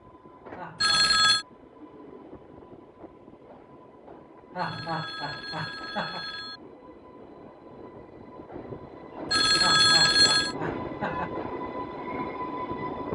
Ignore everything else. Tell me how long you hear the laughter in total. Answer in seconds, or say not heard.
4 s.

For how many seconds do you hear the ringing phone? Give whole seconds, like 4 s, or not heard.
4 s.